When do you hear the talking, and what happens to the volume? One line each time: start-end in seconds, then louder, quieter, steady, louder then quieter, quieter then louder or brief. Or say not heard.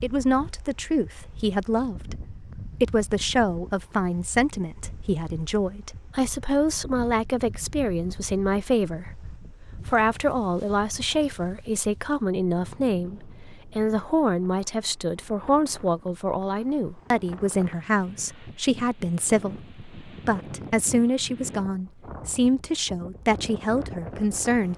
0.0-24.7 steady.